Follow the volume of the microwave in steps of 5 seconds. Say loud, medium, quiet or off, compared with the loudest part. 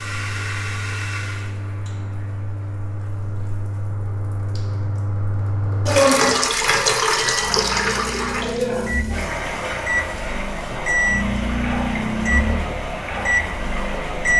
off, medium, loud.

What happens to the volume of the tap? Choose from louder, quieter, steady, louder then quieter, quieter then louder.
louder then quieter.